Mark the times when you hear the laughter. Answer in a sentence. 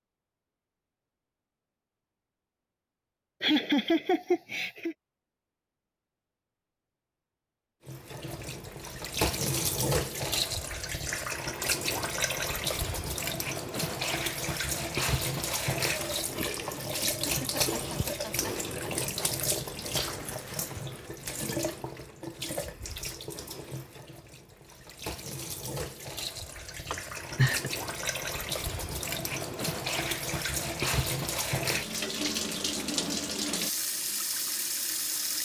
You can hear the laughter from 3.4 to 5.0 s, from 17.2 to 19.1 s and from 26.9 to 27.7 s.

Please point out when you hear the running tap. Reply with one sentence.
You can hear the running tap from 7.8 to 35.3 s.